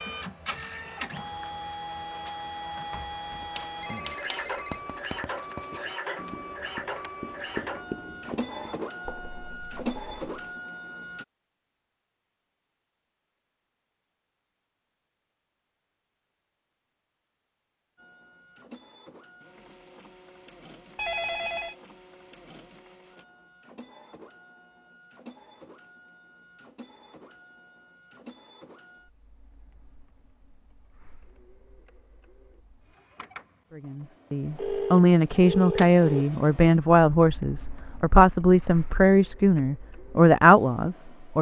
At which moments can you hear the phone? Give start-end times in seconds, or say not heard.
3.3-4.8, 20.9-21.8, 34.5-36.2.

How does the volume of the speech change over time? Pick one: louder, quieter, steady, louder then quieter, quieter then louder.
steady.